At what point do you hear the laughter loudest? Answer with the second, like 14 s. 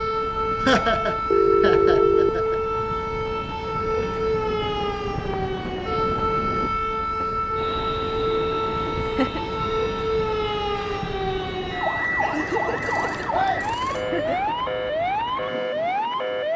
1 s.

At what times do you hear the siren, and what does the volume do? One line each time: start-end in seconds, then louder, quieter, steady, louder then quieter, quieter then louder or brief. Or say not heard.
0.0-16.5 steady.